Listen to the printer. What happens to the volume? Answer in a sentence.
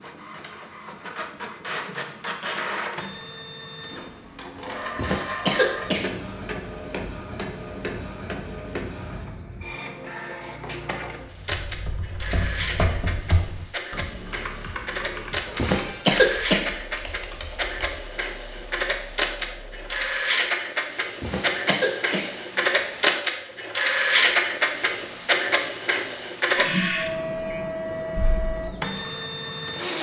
The loudness of the printer goes up.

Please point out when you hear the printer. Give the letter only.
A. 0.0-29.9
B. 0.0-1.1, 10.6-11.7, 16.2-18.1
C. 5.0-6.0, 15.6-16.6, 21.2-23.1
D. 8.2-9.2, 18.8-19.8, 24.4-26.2
A.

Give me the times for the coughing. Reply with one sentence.
You can hear the coughing from 5.0 to 6.0 s, from 15.6 to 16.6 s and from 21.2 to 23.1 s.